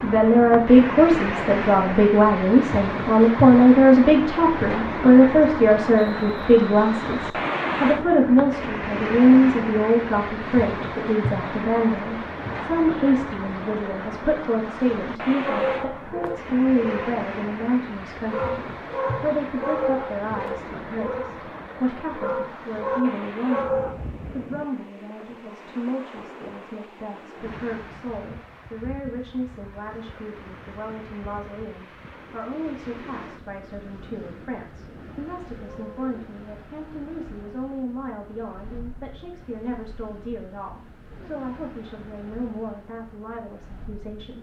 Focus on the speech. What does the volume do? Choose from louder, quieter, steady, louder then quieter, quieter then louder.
quieter.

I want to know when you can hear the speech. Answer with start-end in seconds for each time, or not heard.
0.0-44.3.